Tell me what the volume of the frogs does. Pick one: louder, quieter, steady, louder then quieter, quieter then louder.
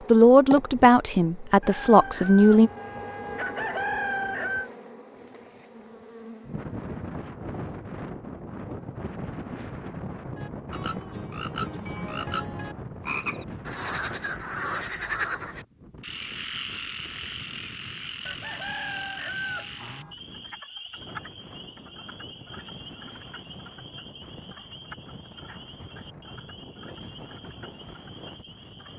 quieter.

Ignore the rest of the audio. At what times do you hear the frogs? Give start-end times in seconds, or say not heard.
10.3-28.9.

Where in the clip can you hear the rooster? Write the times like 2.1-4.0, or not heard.
1.6-4.7, 18.2-20.1.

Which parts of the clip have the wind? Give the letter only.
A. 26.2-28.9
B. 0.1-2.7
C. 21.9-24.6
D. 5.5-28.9
D.